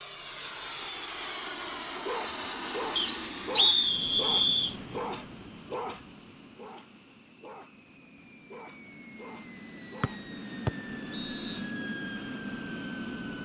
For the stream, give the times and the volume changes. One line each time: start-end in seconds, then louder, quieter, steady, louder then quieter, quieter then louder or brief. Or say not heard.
not heard.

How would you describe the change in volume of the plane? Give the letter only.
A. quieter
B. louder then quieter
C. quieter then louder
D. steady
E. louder
C.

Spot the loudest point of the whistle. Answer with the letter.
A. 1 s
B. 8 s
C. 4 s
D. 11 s
C.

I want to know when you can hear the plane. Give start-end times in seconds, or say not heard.
0.0-13.4.